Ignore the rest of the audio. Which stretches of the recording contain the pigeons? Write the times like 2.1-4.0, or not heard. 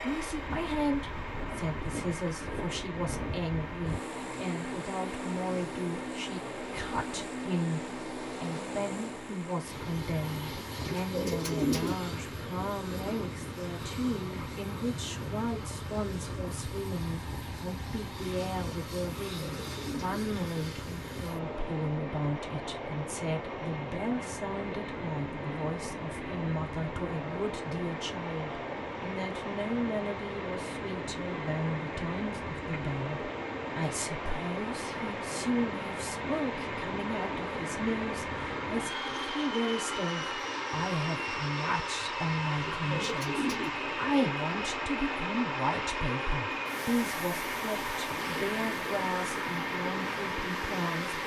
10.8-11.9, 19.4-20.2, 42.6-43.7.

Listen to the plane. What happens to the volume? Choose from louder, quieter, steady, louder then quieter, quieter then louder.
steady.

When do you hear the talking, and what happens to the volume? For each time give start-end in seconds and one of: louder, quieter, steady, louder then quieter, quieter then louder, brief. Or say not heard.
0.0-51.2 steady.